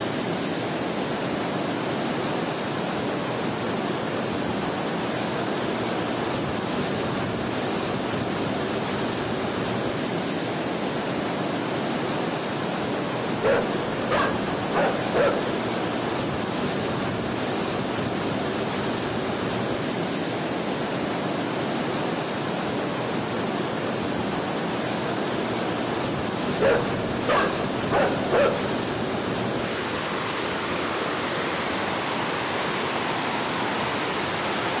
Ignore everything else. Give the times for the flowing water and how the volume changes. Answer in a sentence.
The flowing water can be heard from 0.0 to 34.7 s, at a steady volume.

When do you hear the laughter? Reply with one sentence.
The laughter can't be heard in this clip.